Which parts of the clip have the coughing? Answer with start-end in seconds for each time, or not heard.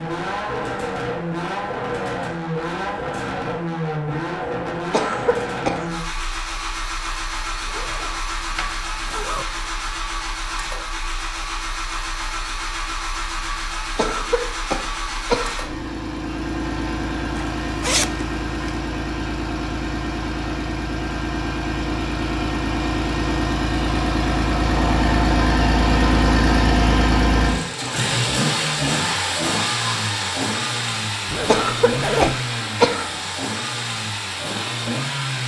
4.9-5.9, 13.9-15.7, 31.4-33.2.